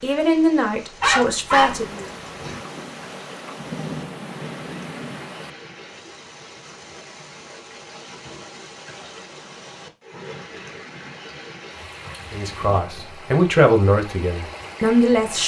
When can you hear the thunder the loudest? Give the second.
4 s.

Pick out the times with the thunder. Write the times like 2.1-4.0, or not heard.
1.5-5.5.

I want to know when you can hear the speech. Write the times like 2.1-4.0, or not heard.
0.0-2.0, 12.3-15.4.